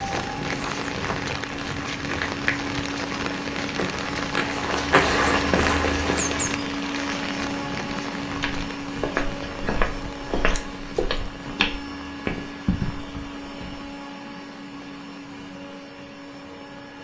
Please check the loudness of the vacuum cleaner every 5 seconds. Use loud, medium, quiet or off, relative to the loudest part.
loud, loud, medium, medium.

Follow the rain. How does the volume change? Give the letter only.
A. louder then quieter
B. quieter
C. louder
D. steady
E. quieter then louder
B.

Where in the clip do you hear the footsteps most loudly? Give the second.
5 s.